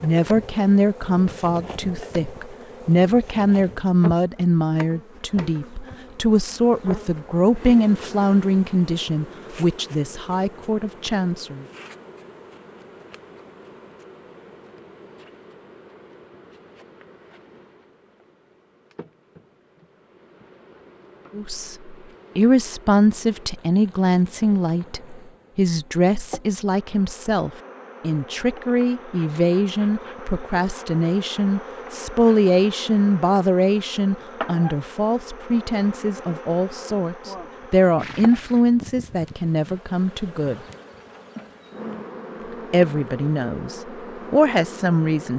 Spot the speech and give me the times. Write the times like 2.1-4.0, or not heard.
0.0-11.7, 21.4-40.6, 42.7-45.3.